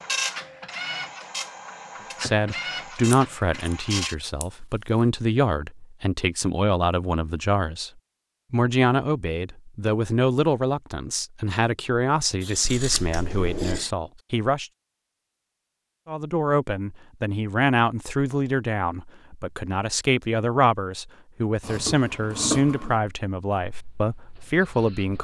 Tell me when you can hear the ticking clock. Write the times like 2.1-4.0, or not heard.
not heard.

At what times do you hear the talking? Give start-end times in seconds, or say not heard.
2.2-7.9, 8.5-14.7, 16.1-25.1.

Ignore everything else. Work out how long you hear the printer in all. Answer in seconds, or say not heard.
7 s.